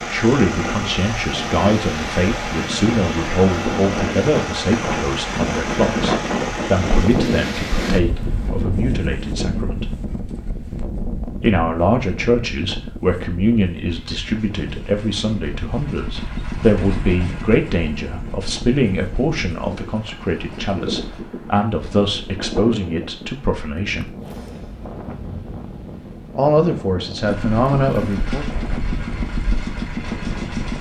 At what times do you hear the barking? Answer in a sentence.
The barking can't be heard in this clip.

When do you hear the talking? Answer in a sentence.
You can hear the talking from 0.1 to 9.9 s, from 11.3 to 24.1 s and from 26.4 to 28.4 s.